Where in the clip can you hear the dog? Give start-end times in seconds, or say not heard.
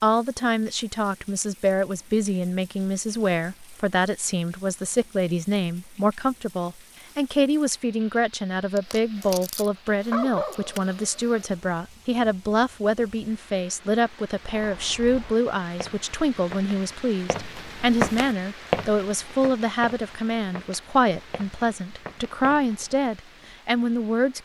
8.8-11.6.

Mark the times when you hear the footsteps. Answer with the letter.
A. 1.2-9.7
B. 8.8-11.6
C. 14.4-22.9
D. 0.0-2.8
C.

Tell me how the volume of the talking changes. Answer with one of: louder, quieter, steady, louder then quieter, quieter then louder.
steady.